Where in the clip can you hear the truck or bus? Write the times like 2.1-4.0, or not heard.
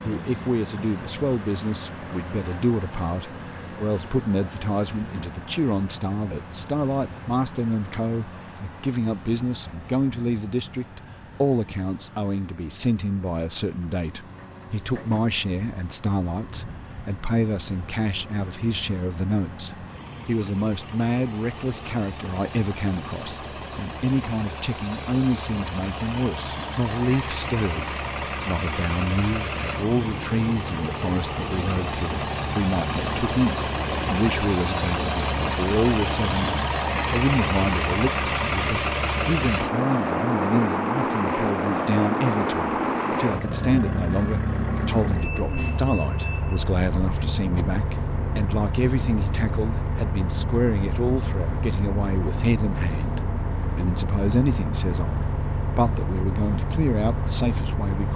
0.0-58.1.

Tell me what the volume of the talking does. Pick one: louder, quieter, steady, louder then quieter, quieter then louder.
steady.